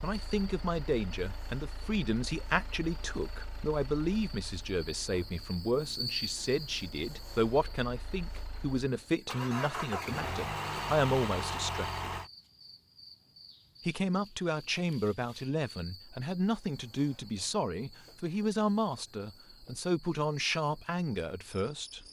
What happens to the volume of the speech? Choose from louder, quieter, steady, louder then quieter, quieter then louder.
steady.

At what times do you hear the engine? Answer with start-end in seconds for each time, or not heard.
0.0-12.3.